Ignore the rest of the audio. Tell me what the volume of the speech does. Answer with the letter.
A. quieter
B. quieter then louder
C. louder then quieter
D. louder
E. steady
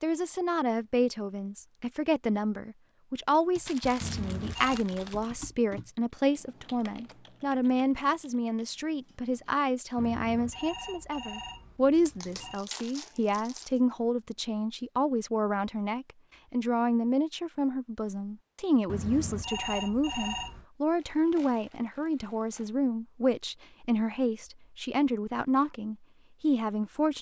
E.